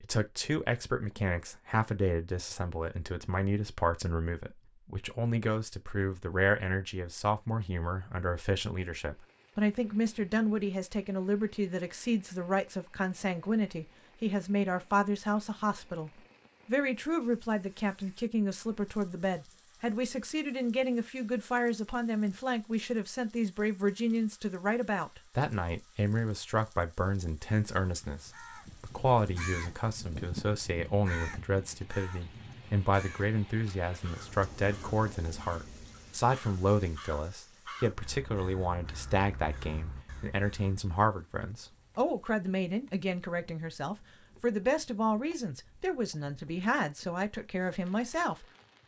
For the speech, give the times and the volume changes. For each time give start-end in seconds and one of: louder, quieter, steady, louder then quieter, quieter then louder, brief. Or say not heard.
0.0-48.5 steady.